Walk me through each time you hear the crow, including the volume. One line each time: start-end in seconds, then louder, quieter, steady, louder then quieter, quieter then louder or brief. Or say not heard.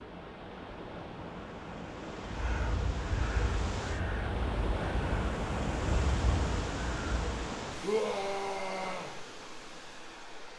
2.2-7.3 steady.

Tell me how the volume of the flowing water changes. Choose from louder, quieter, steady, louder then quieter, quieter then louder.
louder then quieter.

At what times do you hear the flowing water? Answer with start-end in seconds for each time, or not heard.
0.0-10.5.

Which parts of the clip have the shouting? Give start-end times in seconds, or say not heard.
7.8-9.1.